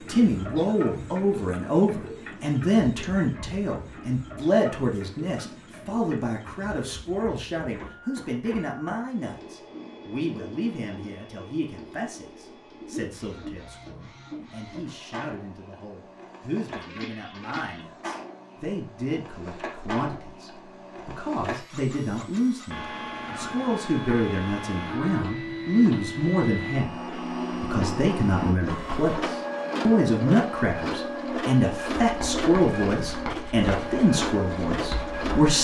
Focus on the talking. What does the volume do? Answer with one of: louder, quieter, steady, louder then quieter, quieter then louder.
quieter then louder.